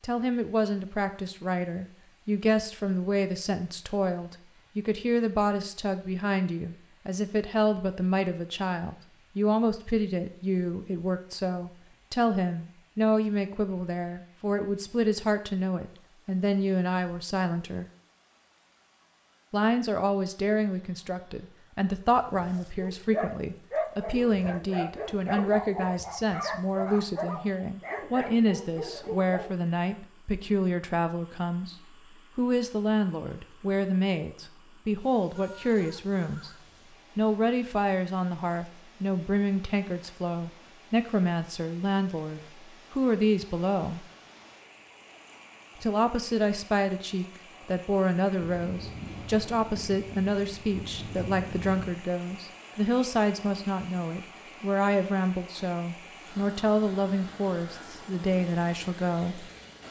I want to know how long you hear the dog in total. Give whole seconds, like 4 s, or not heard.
7 s.